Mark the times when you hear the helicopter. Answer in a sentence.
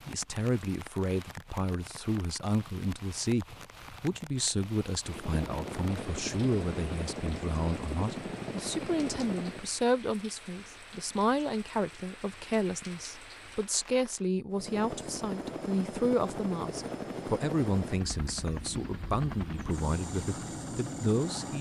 The helicopter can be heard from 5.0 to 9.7 s and from 14.5 to 21.5 s.